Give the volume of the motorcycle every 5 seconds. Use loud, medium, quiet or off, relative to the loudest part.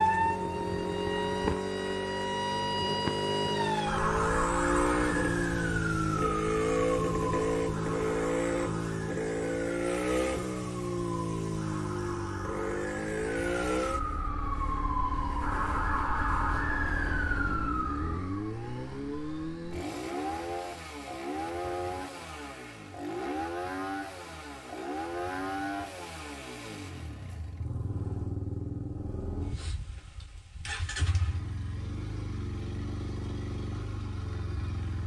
loud, loud, loud, medium, medium, medium, medium.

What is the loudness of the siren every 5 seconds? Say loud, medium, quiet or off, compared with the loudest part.
loud, medium, medium, loud, off, off, off.